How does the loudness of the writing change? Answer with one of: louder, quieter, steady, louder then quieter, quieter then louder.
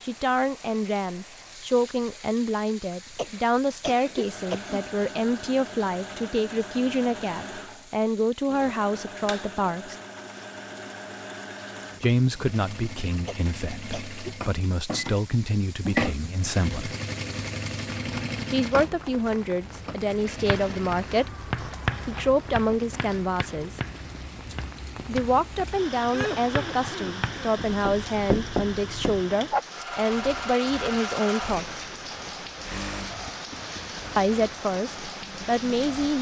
quieter then louder.